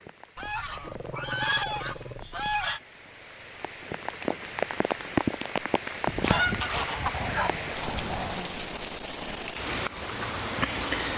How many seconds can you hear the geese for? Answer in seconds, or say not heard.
5 s.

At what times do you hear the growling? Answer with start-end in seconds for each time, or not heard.
0.8-2.2, 6.7-8.6.